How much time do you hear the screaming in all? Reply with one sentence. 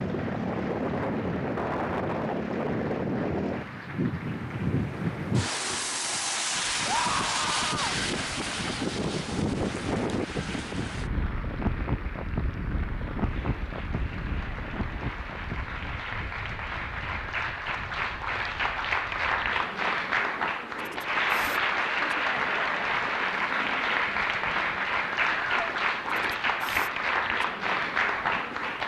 The screaming can be heard for 2 seconds in total.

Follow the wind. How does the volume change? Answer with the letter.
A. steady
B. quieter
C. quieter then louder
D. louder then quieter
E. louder
B.